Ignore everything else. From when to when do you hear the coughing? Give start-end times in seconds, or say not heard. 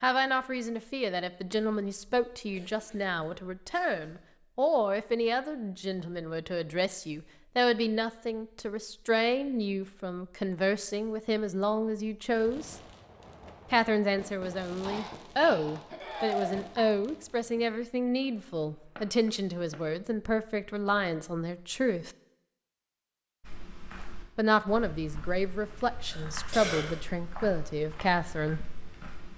2.5-4.2, 14.8-16.9, 26.1-27.0.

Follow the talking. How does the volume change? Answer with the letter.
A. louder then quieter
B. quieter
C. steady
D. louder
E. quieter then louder
C.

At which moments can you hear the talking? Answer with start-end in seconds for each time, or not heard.
0.0-12.8, 13.7-22.1, 24.4-28.6.